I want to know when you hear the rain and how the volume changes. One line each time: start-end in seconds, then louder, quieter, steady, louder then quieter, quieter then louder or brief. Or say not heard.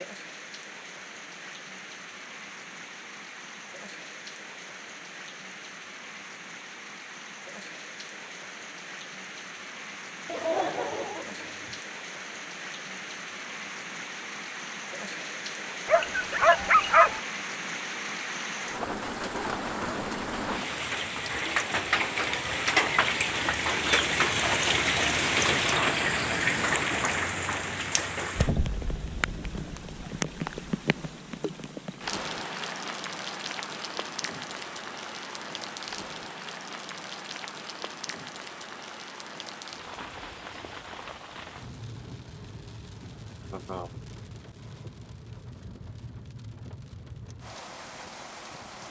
0.0-48.8 louder then quieter.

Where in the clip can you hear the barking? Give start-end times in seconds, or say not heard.
15.8-17.2.